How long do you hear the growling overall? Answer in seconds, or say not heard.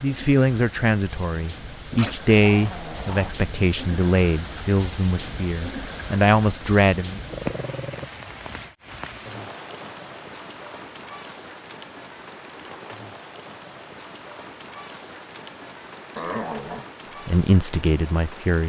3 s.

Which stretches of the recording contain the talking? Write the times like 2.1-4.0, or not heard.
0.0-7.2, 17.2-18.6.